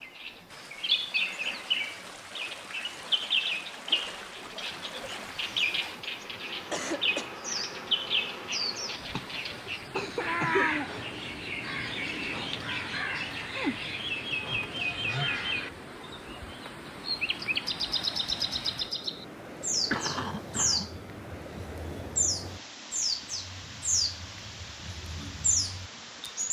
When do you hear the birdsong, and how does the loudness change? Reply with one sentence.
The birdsong can be heard from 0.0 to 26.4 s, at a steady volume.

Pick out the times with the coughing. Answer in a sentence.
The coughing can be heard from 6.7 to 7.3 s, from 9.1 to 10.7 s and from 19.9 to 20.9 s.